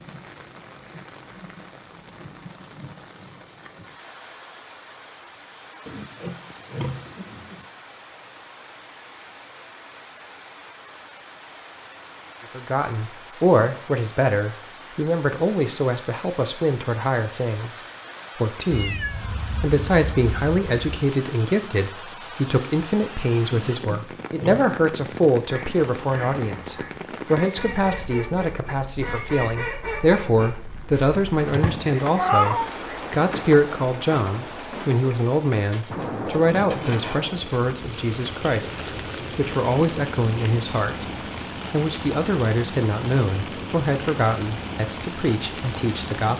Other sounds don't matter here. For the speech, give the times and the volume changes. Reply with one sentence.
The speech can be heard from 12.6 to 46.3 s, at a steady volume.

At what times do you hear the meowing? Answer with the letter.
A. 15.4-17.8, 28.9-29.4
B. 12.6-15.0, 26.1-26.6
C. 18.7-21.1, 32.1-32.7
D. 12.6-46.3
C.